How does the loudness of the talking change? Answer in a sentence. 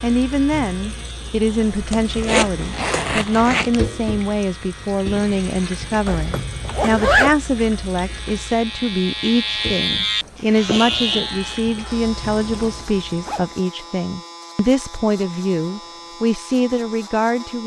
The volume of the talking stays about the same.